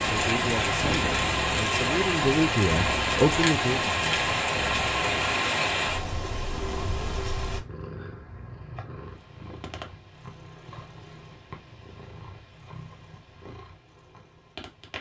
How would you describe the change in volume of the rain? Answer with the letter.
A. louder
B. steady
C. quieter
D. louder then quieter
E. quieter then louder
C.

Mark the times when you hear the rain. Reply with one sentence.
You can hear the rain from 0.0 to 7.6 s.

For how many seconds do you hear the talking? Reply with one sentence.
The talking can be heard for 4 seconds in total.